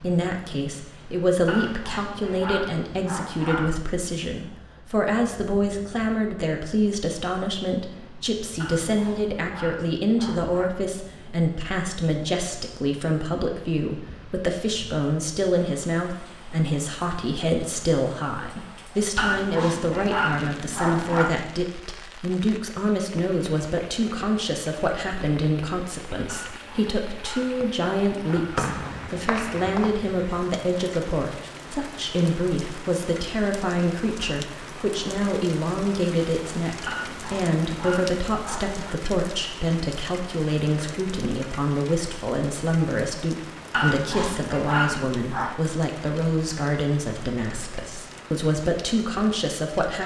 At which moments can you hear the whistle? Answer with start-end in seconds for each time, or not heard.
28.6-29.9.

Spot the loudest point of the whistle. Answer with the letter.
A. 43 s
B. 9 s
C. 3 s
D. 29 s
D.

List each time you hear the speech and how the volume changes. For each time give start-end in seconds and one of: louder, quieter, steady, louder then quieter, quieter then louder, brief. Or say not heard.
0.0-50.0 steady.